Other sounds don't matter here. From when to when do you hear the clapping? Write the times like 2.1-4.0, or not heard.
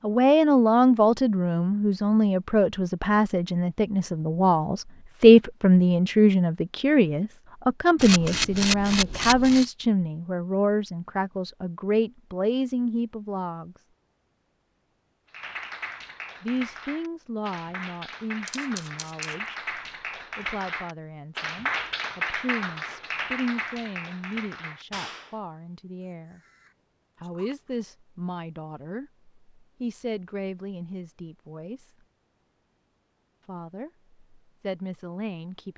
15.3-25.4.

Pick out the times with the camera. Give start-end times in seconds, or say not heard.
8.0-9.7, 18.4-19.4, 26.0-27.8.